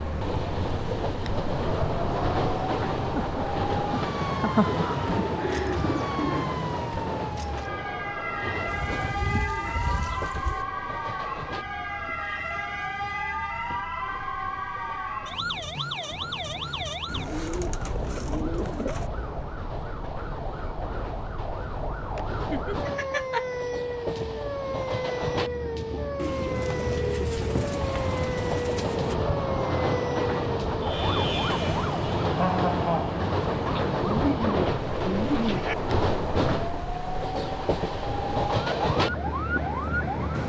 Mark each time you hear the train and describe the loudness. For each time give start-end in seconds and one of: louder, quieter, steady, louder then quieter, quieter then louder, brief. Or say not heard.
0.0-40.4 quieter then louder.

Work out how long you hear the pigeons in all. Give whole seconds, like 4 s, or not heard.
11 s.